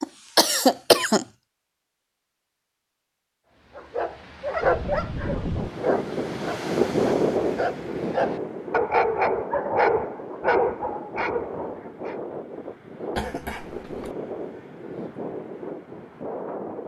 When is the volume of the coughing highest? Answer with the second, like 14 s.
1 s.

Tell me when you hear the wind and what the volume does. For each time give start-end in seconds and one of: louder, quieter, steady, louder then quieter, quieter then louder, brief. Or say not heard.
4.6-16.8 quieter.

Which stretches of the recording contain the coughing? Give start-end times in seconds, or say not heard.
0.0-1.2, 13.2-14.2.